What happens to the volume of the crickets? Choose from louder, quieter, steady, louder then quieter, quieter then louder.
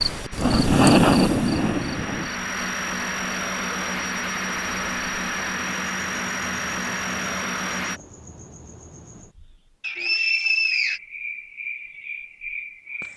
quieter then louder.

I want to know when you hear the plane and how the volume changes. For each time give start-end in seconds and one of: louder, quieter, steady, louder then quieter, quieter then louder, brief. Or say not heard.
0.0-8.0 louder.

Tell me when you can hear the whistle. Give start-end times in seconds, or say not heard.
9.8-11.0.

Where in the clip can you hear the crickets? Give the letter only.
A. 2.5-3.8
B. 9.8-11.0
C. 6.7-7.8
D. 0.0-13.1
D.